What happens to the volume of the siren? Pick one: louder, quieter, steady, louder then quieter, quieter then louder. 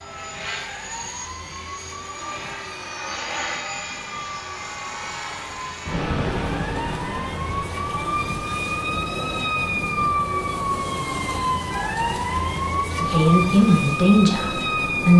louder.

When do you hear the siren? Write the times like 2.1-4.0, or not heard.
0.0-15.1.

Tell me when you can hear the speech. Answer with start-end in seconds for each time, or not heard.
12.9-15.1.